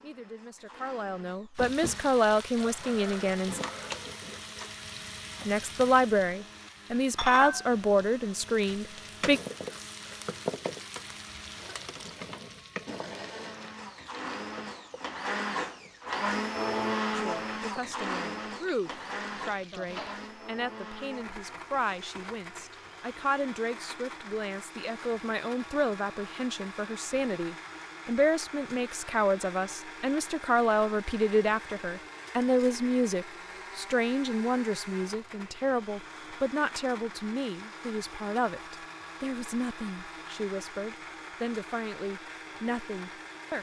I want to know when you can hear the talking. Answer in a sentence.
You can hear the talking from 0.0 to 3.6 s, from 5.5 to 9.4 s and from 17.1 to 43.5 s.